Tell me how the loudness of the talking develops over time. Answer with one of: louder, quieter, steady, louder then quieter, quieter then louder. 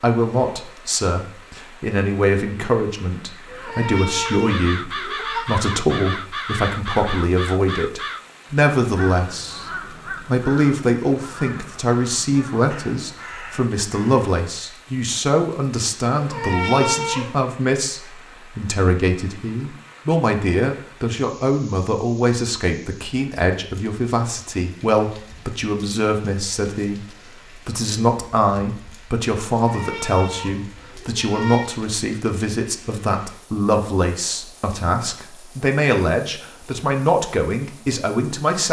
steady.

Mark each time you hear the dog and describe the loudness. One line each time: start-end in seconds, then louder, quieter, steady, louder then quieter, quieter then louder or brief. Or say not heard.
not heard.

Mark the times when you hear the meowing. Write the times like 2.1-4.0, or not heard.
3.5-5.5, 16.1-17.4, 29.5-31.7.